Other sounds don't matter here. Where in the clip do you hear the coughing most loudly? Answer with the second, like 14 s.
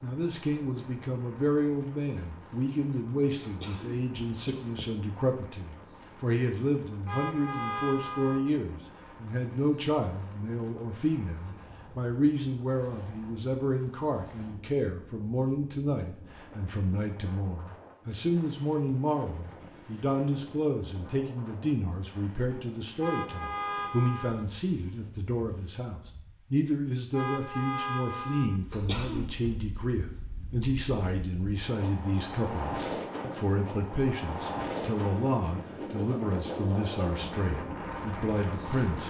29 s.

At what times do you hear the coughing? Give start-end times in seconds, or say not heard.
3.4-5.0, 28.7-29.6.